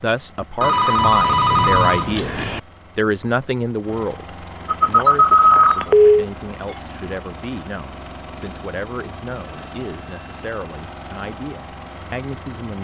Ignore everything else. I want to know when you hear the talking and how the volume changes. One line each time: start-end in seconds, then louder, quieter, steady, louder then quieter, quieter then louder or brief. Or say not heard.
0.0-12.7 quieter.